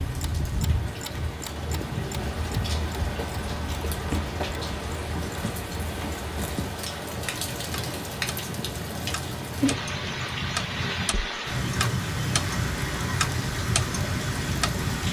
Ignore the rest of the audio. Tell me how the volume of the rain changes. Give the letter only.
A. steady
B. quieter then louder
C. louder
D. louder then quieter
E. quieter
A.